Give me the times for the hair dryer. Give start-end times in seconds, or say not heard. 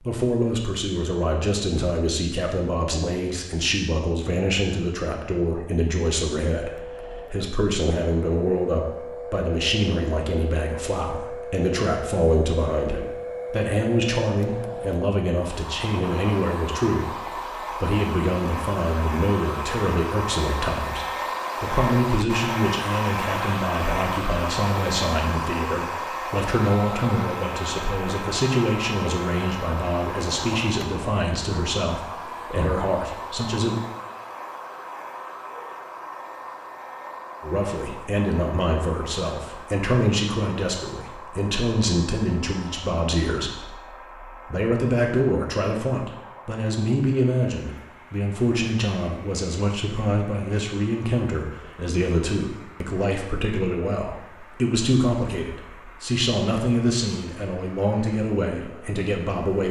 6.5-59.6.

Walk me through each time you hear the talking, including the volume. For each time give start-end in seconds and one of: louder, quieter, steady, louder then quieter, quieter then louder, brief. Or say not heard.
0.0-33.8 steady
37.4-59.6 steady.